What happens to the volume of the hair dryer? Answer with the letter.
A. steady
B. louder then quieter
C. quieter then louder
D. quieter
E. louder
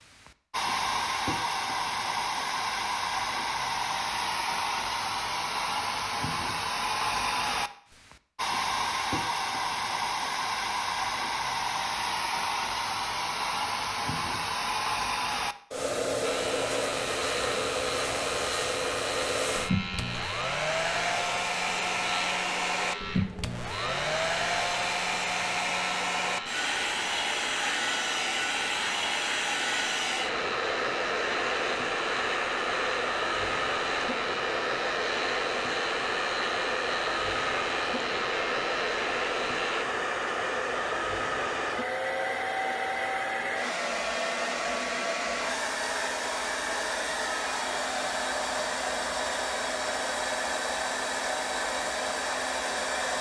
A.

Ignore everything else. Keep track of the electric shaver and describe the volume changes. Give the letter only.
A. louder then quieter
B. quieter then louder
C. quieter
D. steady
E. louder
D.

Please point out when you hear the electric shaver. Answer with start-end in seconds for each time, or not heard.
16.2-39.9.